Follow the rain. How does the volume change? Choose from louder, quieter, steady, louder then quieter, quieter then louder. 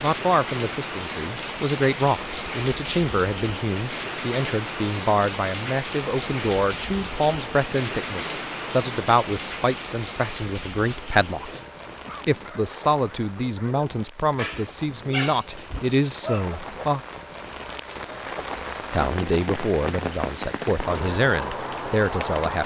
quieter then louder.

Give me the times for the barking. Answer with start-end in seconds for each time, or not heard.
10.8-16.9.